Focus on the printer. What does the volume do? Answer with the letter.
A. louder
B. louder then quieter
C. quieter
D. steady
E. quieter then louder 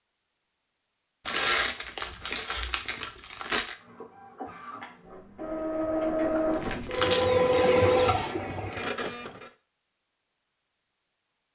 B.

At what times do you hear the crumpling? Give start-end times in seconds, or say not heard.
1.2-3.8, 6.5-7.3.